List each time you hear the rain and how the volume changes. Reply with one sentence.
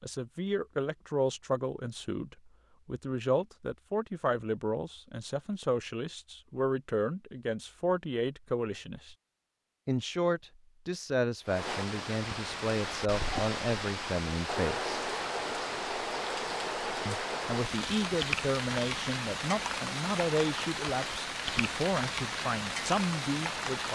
You can hear the rain from 11.4 to 23.8 s, at a steady volume.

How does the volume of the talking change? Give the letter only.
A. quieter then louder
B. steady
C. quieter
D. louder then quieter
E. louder
B.